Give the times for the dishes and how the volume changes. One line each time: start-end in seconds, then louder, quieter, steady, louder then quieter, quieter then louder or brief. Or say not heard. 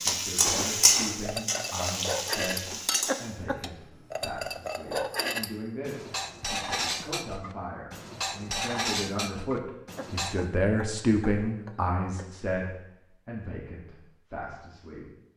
1.2-10.4 steady.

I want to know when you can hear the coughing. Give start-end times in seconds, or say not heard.
3.0-3.6, 9.9-12.3.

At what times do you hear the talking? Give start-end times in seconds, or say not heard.
0.0-15.1.